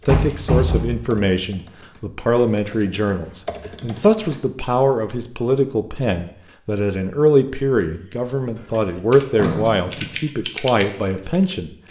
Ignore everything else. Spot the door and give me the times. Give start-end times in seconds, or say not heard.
0.1-1.1, 8.6-10.2.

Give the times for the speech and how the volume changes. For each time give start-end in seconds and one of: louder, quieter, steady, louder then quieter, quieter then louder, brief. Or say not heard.
0.1-11.7 steady.